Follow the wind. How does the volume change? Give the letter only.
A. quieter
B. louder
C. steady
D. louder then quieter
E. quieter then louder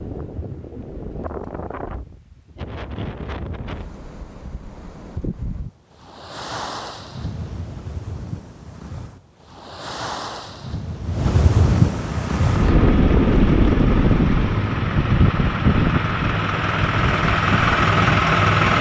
B.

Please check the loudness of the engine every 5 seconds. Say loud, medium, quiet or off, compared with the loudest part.
off, off, medium, loud.